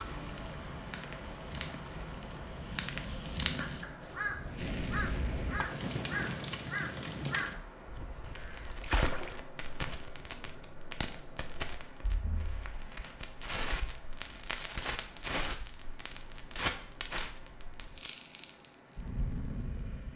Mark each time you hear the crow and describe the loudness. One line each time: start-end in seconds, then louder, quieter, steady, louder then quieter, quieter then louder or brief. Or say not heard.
3.5-9.9 steady.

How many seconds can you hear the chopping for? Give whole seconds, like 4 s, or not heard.
not heard.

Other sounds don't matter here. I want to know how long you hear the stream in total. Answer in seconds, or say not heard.
20 s.